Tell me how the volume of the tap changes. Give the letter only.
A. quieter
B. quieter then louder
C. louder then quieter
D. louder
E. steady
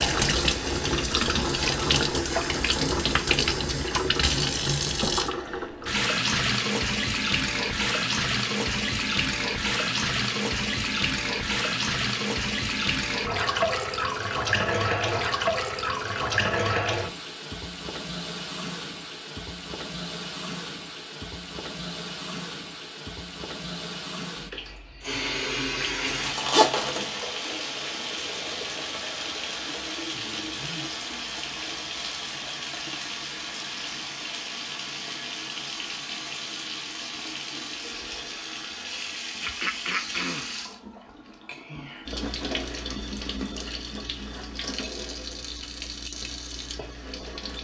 A.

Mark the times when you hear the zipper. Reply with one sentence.
The zipper can be heard from 26.1 to 27.1 s.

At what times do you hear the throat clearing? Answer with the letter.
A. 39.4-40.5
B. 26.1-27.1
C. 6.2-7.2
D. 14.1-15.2
A.